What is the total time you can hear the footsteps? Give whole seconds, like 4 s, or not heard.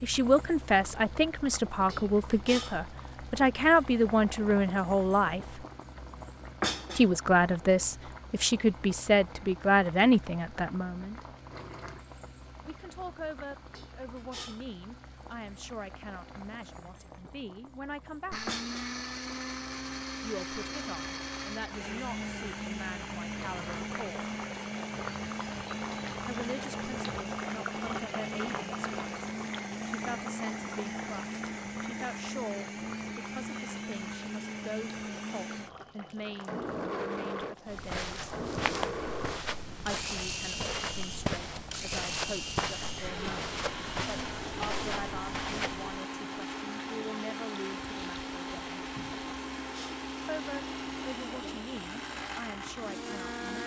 8 s.